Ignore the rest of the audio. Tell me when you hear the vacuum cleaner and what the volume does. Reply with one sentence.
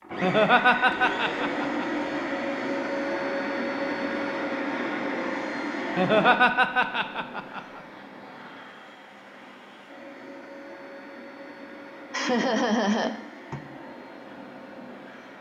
You can hear the vacuum cleaner from 0.0 to 15.3 s, getting quieter.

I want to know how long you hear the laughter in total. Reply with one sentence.
The laughter can be heard for 5 seconds in total.